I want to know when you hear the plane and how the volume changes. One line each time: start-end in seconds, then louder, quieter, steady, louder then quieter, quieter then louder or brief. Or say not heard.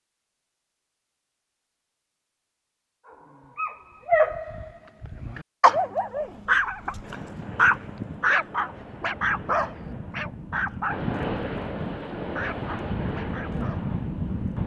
6.2-14.6 louder.